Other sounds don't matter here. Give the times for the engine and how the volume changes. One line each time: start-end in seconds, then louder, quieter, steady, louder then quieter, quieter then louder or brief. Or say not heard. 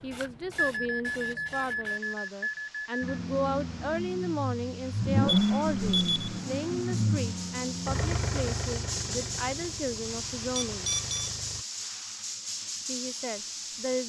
3.0-11.7 louder then quieter.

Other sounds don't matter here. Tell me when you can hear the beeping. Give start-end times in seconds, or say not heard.
0.6-3.2, 5.2-6.3, 10.6-11.3.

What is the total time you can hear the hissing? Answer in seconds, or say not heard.
14 s.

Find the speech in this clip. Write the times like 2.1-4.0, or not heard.
0.0-10.9, 12.8-14.0.